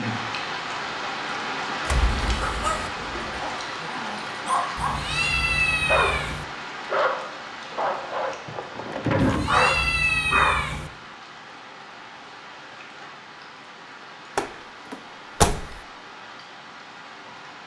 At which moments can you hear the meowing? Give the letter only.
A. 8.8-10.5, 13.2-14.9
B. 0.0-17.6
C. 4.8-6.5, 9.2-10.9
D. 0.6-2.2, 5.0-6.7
C.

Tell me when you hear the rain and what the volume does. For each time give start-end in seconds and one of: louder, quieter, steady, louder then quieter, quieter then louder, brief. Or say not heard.
0.0-17.6 quieter.